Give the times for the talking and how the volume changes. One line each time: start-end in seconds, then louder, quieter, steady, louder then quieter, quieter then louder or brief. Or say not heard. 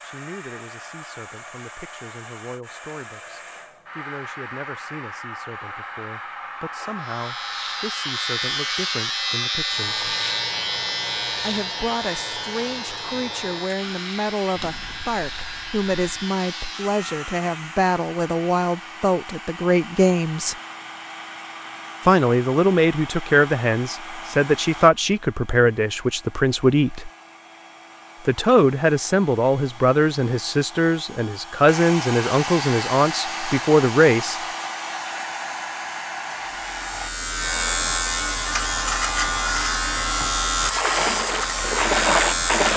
0.0-10.1 louder
11.4-20.6 louder
22.1-27.1 steady
28.2-34.4 steady.